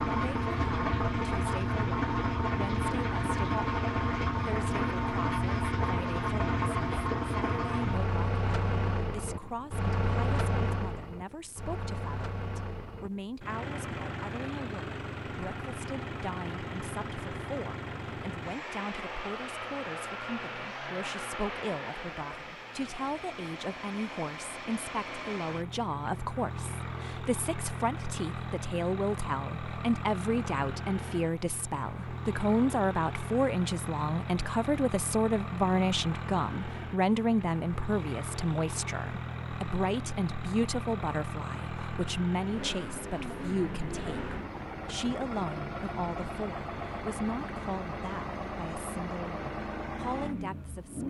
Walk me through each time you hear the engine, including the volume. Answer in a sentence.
You can hear the engine from 0.0 to 51.0 s, getting quieter.